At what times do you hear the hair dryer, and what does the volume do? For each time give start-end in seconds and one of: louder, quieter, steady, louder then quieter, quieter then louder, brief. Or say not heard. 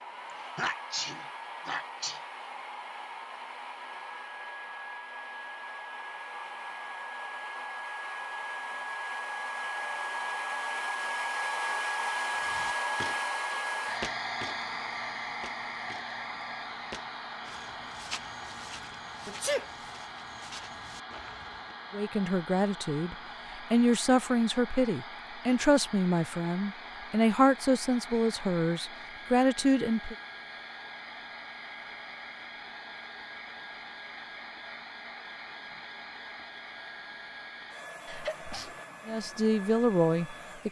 0.0-40.6 louder then quieter.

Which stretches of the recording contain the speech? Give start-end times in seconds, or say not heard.
21.9-30.1, 39.0-40.6.